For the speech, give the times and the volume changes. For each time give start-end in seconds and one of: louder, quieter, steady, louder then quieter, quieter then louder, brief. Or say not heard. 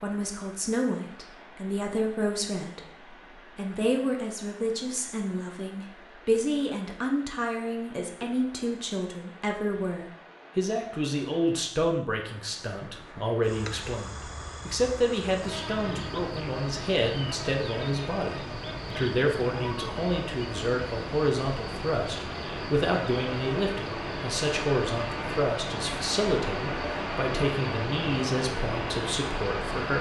0.0-29.9 steady.